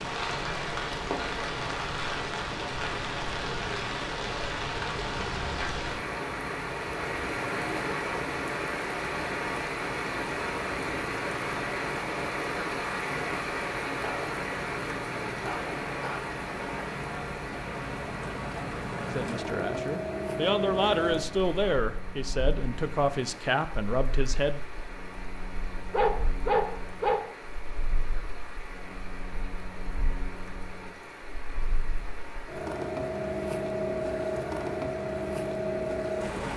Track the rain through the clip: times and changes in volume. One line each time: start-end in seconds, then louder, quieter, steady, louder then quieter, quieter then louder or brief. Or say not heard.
0.0-36.4 quieter.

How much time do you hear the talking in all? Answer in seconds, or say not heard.
6 s.